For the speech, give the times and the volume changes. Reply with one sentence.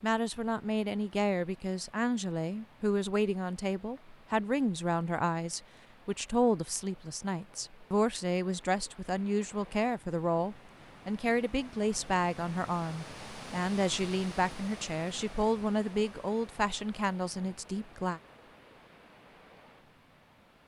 The speech can be heard from 0.0 to 18.2 s, at a steady volume.